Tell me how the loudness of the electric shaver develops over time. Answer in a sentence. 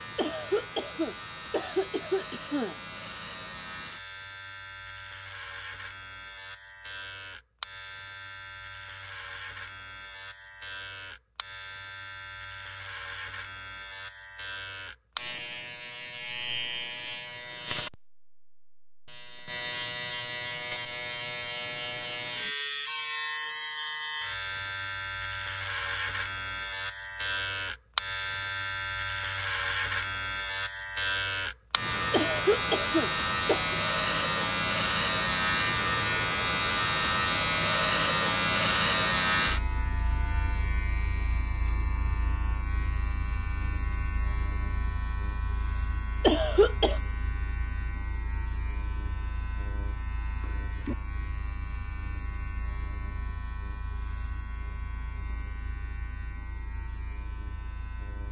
The volume of the electric shaver goes up, then down.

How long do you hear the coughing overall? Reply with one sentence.
You can hear the coughing for 5 seconds altogether.